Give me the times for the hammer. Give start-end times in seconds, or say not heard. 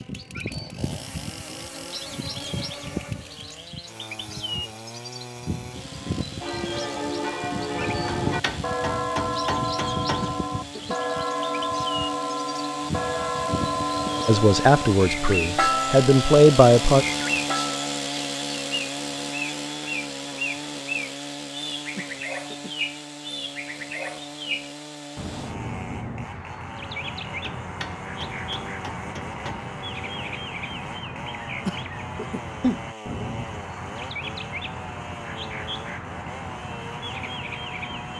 8.1-10.4, 27.4-29.7.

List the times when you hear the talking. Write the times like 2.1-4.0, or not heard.
14.2-17.1.